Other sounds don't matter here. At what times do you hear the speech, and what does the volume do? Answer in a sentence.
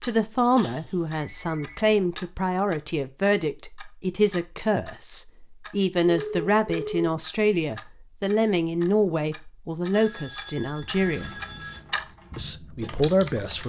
You can hear the speech from 0.0 to 11.3 s, at a steady volume; and briefly from 12.3 to 13.6 s.